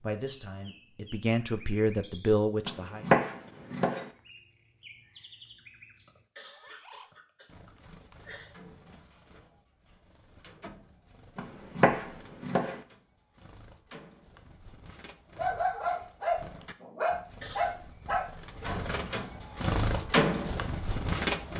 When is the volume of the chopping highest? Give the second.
3 s.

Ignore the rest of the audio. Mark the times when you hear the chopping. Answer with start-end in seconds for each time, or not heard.
2.6-4.1, 11.3-12.8.